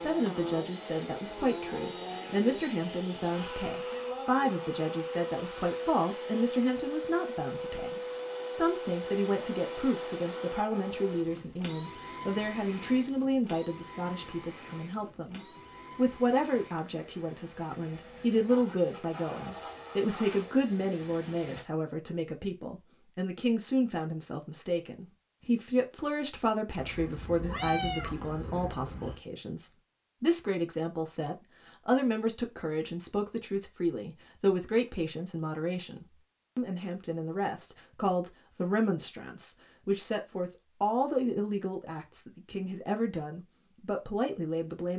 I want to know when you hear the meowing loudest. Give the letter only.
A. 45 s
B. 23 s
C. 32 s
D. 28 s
D.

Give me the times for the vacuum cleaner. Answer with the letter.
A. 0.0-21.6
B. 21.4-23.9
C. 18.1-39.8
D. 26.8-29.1
A.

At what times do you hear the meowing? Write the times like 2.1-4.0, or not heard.
26.8-29.1.